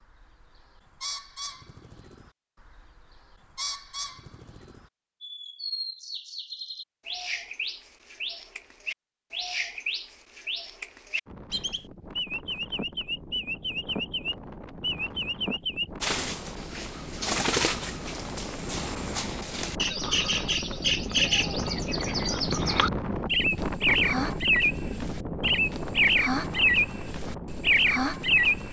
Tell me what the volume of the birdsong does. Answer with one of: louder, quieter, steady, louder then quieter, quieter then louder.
louder.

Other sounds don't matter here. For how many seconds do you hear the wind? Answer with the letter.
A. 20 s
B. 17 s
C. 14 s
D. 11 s
B.